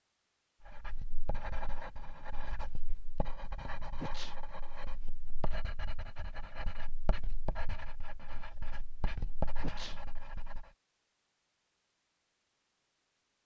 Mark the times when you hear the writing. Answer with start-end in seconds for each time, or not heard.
0.7-10.7.